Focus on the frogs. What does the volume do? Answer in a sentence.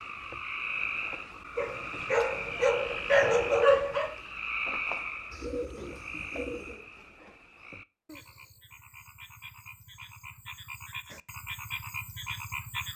The volume of the frogs goes down, then up.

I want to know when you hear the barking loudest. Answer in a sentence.
The volume of the barking peaks at 4 seconds.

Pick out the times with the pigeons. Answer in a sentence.
The pigeons can be heard from 5.3 to 6.8 s.